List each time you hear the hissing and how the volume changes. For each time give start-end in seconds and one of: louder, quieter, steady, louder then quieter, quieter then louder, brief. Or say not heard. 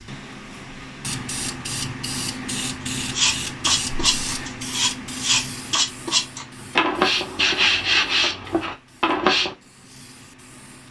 0.0-10.8 quieter.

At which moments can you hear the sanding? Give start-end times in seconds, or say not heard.
3.1-9.6.